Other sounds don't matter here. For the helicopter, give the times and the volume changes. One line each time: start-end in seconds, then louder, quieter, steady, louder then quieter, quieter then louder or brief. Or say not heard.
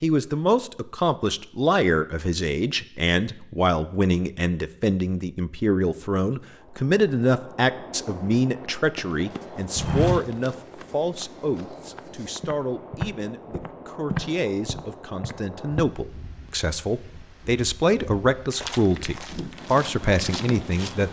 not heard.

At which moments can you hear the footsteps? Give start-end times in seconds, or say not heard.
8.9-15.8, 18.5-21.0.